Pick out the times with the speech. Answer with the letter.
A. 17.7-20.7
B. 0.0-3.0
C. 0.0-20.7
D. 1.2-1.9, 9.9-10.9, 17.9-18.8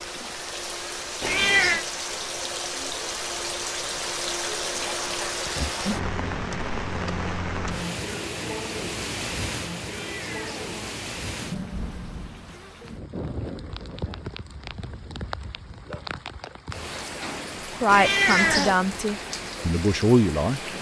A.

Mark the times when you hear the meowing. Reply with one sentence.
You can hear the meowing from 1.2 to 1.9 s, from 9.9 to 10.9 s and from 17.9 to 18.8 s.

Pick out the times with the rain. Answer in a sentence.
You can hear the rain from 0.0 to 20.7 s.